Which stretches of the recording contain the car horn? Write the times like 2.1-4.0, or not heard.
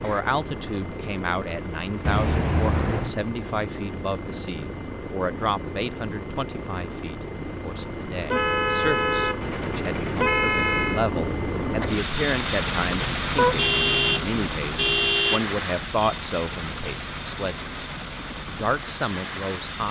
2.0-3.1, 8.2-11.1, 13.3-15.4.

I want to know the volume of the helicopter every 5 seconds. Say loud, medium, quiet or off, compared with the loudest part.
medium, medium, loud, medium.